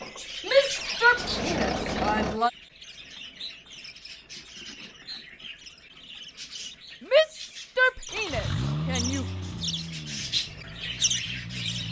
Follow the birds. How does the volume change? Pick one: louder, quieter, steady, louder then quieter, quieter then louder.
quieter then louder.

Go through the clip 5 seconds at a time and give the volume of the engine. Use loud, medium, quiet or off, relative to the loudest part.
loud, loud, medium.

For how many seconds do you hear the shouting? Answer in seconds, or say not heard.
4 s.